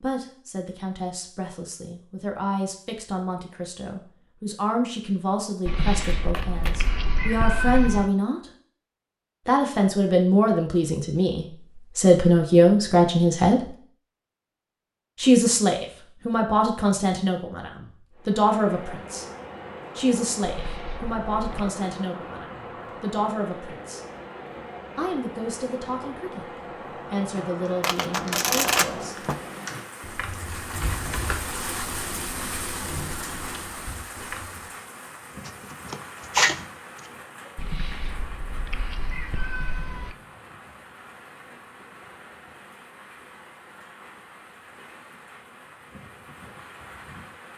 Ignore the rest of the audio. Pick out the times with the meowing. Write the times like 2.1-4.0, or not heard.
5.7-8.1, 20.4-21.7, 37.5-40.1.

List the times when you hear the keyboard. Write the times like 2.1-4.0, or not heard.
27.6-34.7.